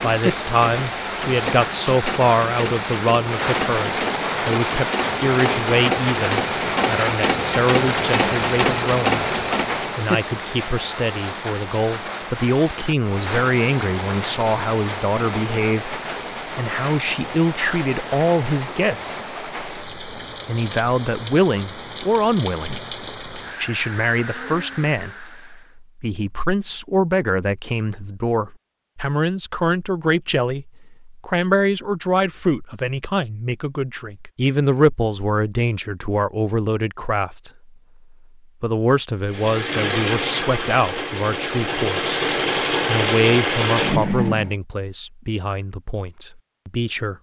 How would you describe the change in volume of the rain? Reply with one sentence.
The volume of the rain goes down.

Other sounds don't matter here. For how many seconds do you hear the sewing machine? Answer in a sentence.
You can hear the sewing machine for 15 seconds altogether.